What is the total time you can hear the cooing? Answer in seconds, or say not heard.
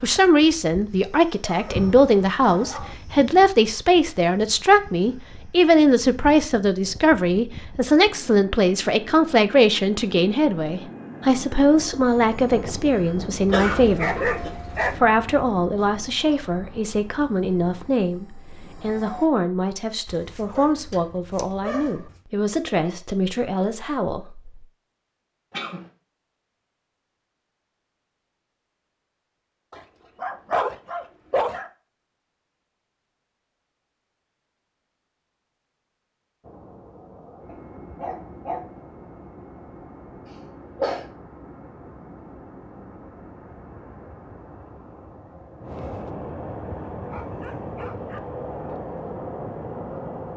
not heard.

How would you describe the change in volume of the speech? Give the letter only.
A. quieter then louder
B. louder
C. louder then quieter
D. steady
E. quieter
E.